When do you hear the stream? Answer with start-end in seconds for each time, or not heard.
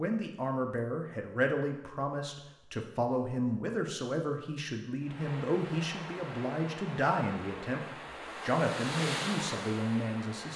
5.0-10.5.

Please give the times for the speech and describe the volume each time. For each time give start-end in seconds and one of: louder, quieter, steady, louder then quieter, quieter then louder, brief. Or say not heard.
0.0-10.5 steady.